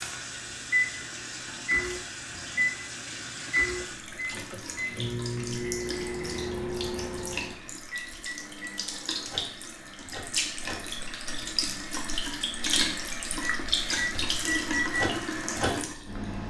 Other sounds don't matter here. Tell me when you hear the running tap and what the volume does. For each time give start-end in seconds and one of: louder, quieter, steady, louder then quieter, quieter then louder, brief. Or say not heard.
0.0-16.4 louder.